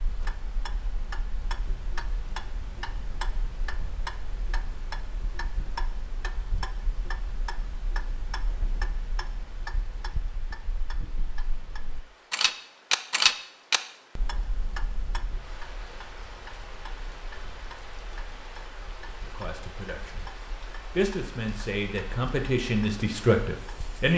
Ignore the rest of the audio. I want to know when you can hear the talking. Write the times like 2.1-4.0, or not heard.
19.2-24.1.